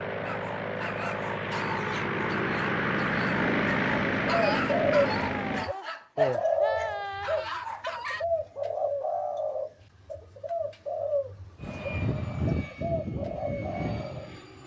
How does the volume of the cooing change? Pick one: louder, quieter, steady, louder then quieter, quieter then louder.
quieter.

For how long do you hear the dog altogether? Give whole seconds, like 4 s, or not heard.
8 s.